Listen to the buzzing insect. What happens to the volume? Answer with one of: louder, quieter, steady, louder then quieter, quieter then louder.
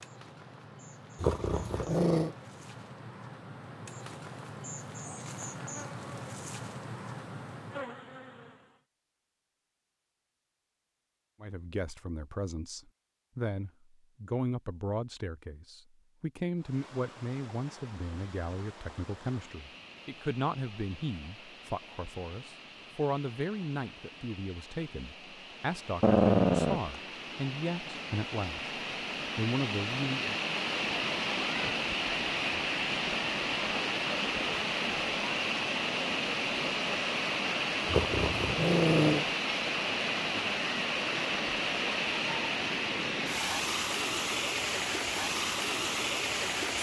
louder.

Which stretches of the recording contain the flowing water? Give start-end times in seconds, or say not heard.
16.6-46.7.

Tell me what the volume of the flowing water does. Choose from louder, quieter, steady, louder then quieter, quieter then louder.
louder.